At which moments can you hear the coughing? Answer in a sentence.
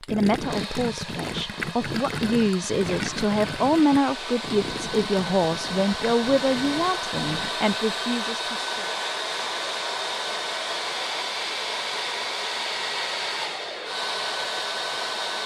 The coughing can't be heard in this clip.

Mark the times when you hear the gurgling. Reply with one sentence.
You can hear the gurgling from 0.1 to 7.5 s.